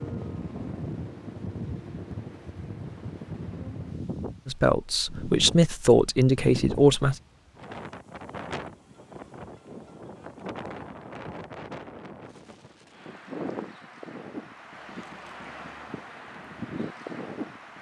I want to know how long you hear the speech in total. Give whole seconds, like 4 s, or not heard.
3 s.